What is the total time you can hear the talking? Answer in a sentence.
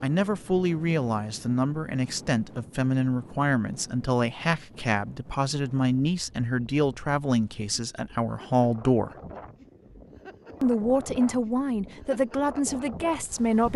You can hear the talking for 12 seconds altogether.